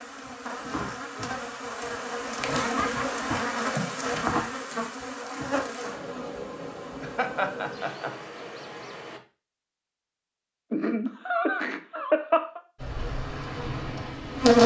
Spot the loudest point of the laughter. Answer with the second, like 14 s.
12 s.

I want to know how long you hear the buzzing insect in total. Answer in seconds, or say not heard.
11 s.